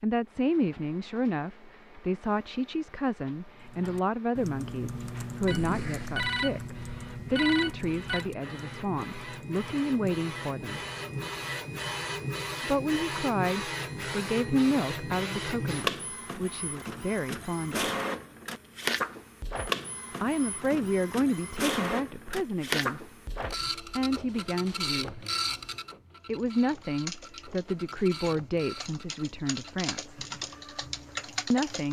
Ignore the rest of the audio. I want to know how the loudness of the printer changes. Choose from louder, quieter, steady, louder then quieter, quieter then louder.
louder then quieter.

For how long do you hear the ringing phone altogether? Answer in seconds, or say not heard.
3 s.